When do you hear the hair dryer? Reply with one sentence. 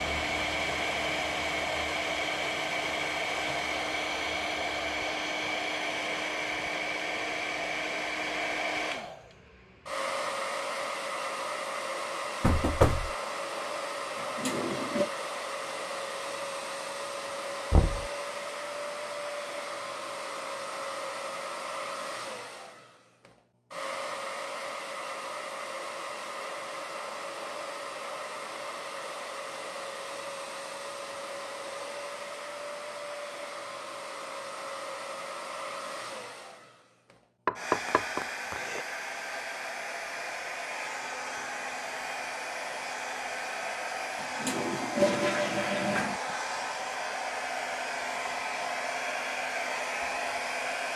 You can hear the hair dryer from 0.0 to 50.9 s.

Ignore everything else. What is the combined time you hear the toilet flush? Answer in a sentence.
The toilet flush can be heard for 3 seconds in total.